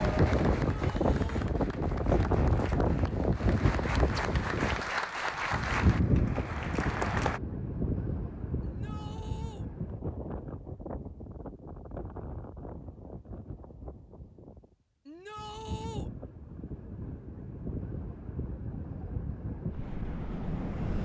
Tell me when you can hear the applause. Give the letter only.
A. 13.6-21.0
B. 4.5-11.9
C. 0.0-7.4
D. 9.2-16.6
C.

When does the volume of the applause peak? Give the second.
5 s.